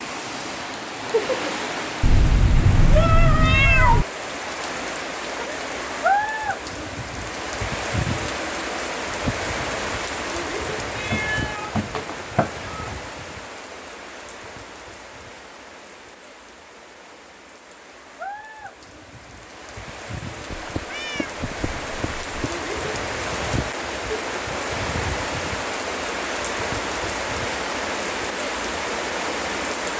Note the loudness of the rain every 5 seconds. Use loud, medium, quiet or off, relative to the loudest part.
loud, loud, medium, quiet, loud, loud.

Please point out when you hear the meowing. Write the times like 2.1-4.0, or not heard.
2.0-4.0, 10.9-12.9, 20.5-22.5.